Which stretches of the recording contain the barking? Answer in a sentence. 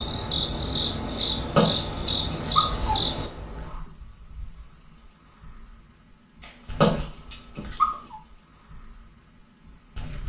The barking can be heard from 1.6 to 3.0 s and from 6.4 to 8.2 s.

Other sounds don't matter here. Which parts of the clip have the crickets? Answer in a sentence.
You can hear the crickets from 0.0 to 10.2 s.